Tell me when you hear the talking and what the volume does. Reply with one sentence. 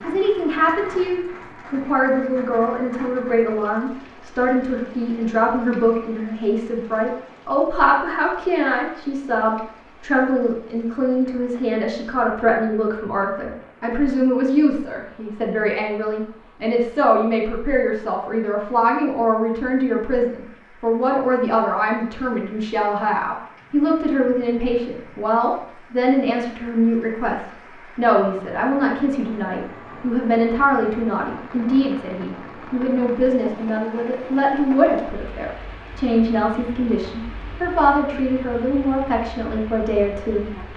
You can hear the talking from 0.0 to 40.5 s, at a steady volume.